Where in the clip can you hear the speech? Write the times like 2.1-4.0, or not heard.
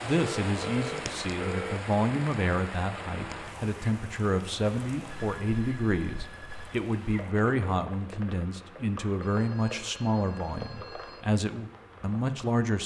0.0-12.8.